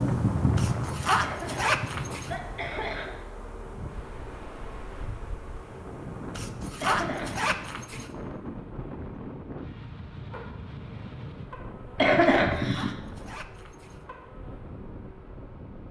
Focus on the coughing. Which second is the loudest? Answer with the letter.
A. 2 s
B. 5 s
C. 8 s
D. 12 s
D.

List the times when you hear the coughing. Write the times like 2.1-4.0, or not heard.
1.2-3.1, 6.8-7.6, 11.9-12.9.